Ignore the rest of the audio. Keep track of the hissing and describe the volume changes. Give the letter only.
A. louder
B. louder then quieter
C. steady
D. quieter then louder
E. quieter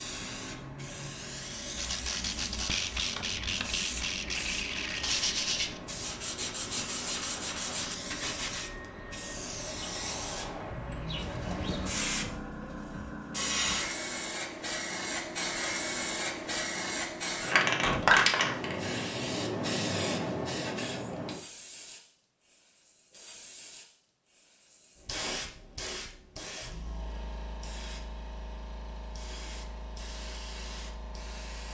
B.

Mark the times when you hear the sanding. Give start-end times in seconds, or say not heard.
1.6-8.7.